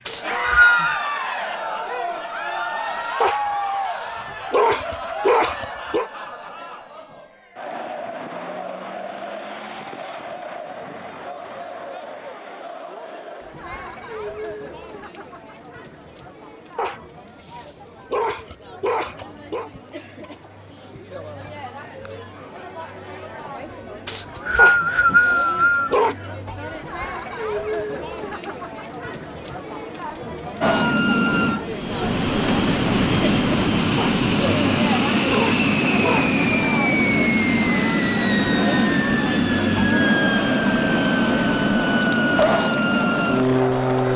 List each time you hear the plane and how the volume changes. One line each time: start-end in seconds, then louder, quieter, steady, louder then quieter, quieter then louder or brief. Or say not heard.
30.6-44.1 steady.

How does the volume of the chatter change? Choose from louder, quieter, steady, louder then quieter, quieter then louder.
quieter then louder.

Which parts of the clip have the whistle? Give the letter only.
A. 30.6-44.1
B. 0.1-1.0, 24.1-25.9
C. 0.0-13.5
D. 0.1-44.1
B.